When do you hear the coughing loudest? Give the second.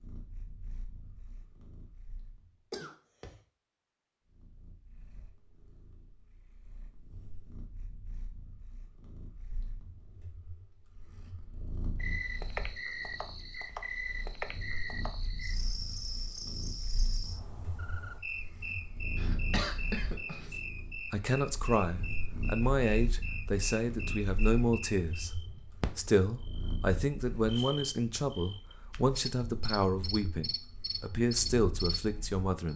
20 s.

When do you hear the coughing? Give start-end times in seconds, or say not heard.
2.7-3.4, 19.1-20.6.